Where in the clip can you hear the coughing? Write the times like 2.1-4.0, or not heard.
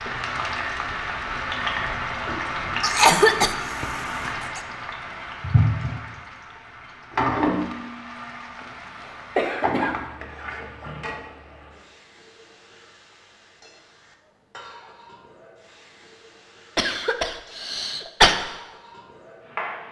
2.8-4.6, 9.3-10.0, 16.8-18.4.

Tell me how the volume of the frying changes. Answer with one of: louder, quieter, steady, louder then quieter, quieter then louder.
quieter.